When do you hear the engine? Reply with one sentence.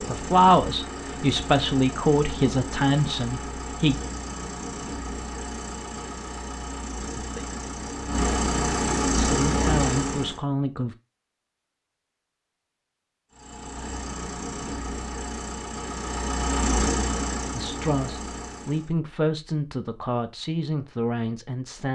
The engine can be heard from 0.0 to 10.4 s and from 13.3 to 18.9 s.